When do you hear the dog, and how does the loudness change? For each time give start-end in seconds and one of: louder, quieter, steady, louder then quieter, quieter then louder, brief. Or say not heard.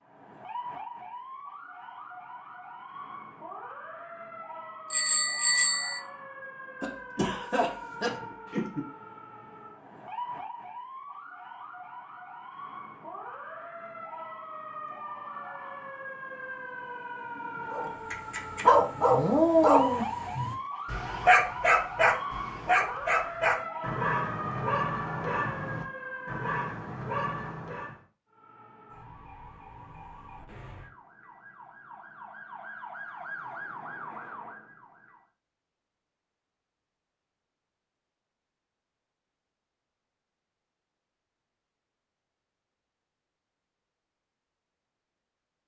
17.7-28.0 quieter.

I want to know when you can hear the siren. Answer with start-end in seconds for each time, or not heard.
0.0-26.5, 28.2-35.2.